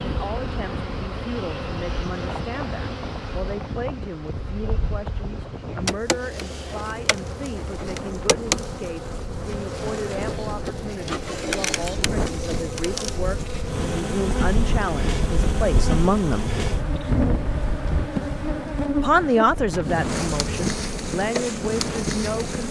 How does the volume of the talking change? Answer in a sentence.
The loudness of the talking goes up.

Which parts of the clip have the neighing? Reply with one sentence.
You can't hear the neighing here.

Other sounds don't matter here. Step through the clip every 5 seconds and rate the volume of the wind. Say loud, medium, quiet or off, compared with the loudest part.
medium, medium, loud, loud, loud.